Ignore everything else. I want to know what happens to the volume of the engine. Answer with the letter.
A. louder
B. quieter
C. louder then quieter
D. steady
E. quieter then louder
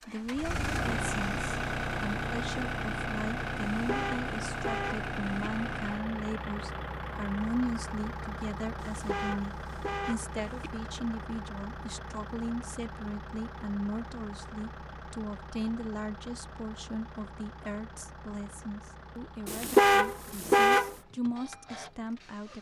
B.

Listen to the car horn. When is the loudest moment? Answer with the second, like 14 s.
20 s.